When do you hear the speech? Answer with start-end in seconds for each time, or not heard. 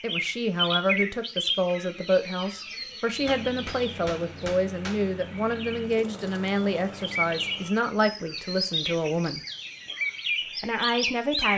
0.0-9.4, 10.6-11.5.